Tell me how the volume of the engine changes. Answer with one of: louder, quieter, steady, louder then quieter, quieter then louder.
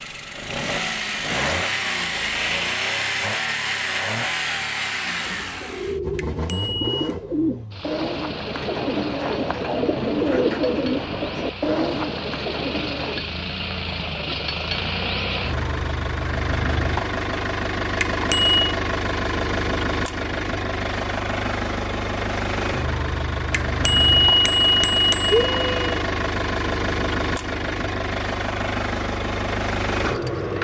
quieter then louder.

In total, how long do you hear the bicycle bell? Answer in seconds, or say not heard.
4 s.